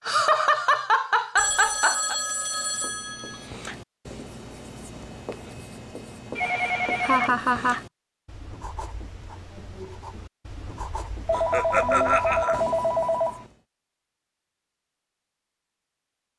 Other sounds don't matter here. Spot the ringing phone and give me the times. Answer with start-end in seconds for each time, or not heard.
1.4-3.5, 6.3-7.3, 11.2-13.4.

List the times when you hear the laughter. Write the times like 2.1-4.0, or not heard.
0.1-2.1, 7.0-7.8, 11.3-12.7.